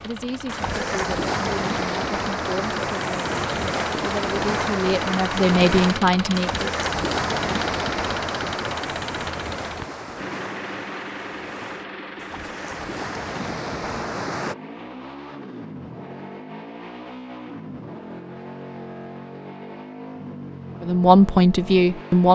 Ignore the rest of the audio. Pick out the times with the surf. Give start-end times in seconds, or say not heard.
0.0-14.6.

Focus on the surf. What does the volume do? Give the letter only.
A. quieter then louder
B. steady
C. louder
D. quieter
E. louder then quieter
D.